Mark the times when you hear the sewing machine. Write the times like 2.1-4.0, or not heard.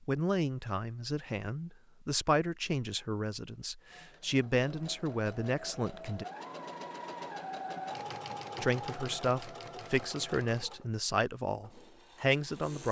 3.9-12.8.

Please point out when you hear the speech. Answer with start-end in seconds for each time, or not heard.
0.0-6.2, 8.6-12.8.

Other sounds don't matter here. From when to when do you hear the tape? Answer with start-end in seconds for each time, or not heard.
not heard.